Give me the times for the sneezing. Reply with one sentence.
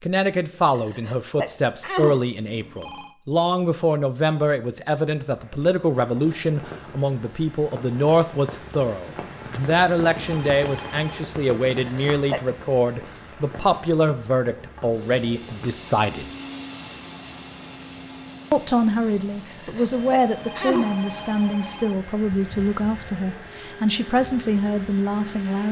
You can hear the sneezing from 0.8 to 2.2 s, from 11.8 to 12.4 s and from 19.4 to 20.9 s.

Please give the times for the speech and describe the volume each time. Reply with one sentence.
You can hear the speech from 0.0 to 16.3 s, at a steady volume; and from 18.5 to 25.6 s, at a steady volume.